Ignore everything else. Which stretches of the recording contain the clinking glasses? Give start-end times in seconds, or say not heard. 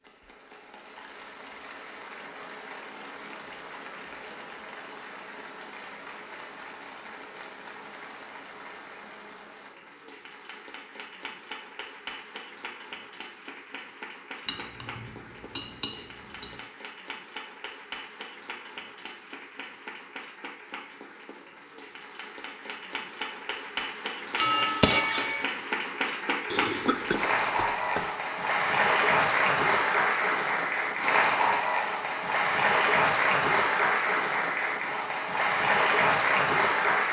14.4-16.6, 24.4-25.4.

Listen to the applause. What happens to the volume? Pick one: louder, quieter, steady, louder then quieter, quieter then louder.
louder.